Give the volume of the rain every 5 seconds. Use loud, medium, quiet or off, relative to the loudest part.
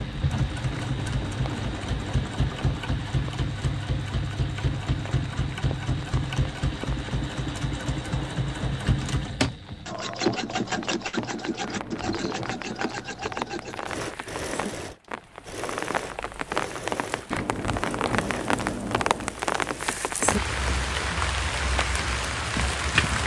quiet, quiet, medium, loud, loud.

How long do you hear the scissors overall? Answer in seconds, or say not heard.
5 s.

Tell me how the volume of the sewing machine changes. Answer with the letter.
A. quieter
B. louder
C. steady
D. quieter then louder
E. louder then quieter
A.